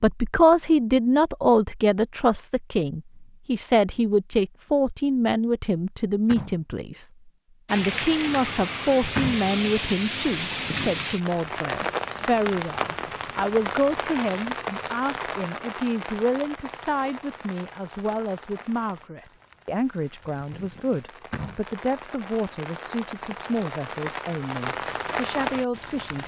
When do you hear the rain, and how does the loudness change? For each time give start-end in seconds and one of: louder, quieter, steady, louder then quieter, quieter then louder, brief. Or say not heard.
7.7-26.2 quieter then louder.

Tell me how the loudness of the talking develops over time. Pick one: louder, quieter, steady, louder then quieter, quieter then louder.
quieter.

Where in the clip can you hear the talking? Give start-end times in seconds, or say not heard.
0.0-7.0, 7.7-26.2.